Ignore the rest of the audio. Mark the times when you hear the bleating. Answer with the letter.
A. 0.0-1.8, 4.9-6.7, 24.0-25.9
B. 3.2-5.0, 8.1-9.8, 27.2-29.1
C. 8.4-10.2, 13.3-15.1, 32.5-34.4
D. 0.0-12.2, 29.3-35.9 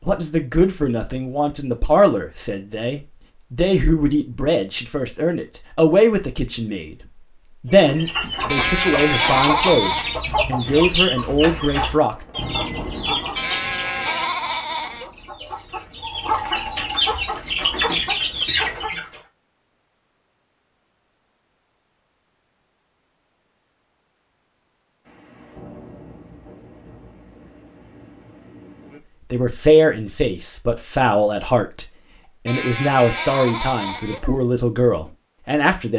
C.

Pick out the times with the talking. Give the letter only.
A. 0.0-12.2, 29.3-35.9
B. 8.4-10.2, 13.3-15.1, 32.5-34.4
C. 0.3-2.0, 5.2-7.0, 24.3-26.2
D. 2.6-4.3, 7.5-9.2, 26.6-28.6
A.